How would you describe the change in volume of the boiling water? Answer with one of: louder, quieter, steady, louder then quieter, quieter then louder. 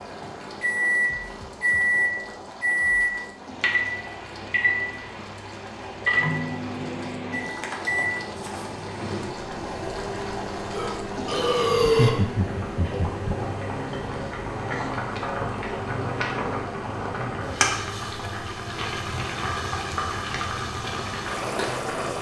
louder.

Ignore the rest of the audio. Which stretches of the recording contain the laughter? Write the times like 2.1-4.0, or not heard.
11.8-13.3.